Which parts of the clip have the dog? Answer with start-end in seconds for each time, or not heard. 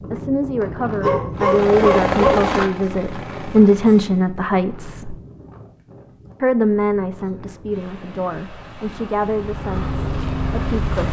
1.0-2.5.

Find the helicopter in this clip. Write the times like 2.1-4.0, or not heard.
1.4-4.3, 9.2-11.0.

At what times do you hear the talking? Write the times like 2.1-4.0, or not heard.
0.1-5.2, 6.4-11.0.